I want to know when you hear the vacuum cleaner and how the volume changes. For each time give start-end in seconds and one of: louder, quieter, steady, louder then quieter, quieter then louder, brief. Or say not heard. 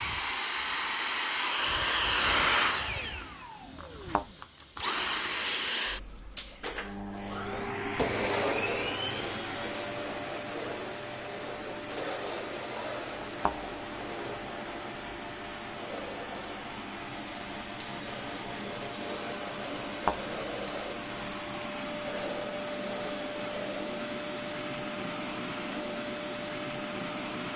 0.0-27.5 quieter.